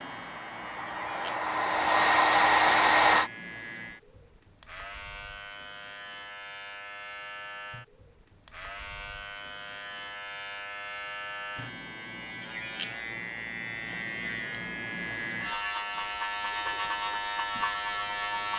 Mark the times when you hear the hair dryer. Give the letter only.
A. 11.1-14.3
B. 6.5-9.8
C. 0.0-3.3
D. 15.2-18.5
C.